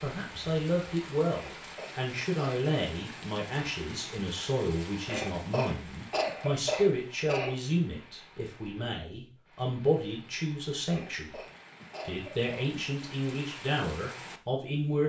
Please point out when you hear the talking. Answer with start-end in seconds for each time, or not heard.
0.0-11.4, 12.1-15.0.